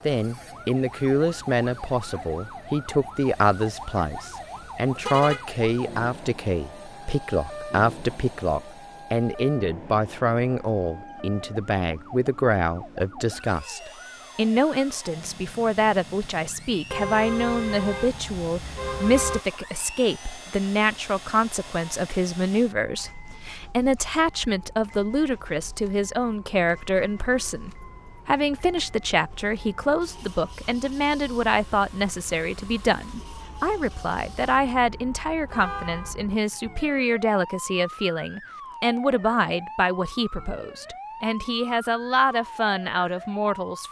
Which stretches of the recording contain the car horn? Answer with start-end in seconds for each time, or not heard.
4.5-5.5, 16.9-19.4, 35.5-36.1.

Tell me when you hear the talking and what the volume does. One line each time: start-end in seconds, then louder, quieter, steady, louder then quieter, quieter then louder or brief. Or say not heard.
0.1-43.8 steady.